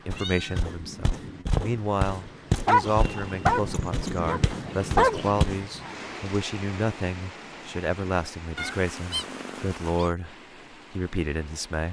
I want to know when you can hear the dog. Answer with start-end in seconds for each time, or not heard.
2.5-5.5.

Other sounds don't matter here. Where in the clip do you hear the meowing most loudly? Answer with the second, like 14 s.
9 s.